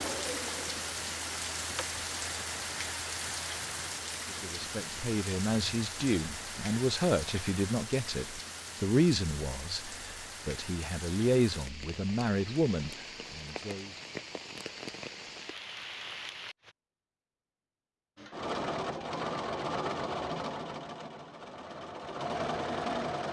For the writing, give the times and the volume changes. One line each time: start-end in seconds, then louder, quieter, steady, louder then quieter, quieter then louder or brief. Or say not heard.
not heard.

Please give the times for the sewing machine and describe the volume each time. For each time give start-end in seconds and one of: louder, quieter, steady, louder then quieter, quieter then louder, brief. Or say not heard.
0.0-1.9 brief
18.1-23.2 quieter then louder.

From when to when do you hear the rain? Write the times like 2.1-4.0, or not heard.
0.0-16.8.